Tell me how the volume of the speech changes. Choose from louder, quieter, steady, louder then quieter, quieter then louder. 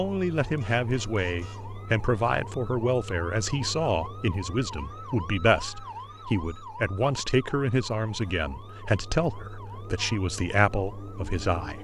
steady.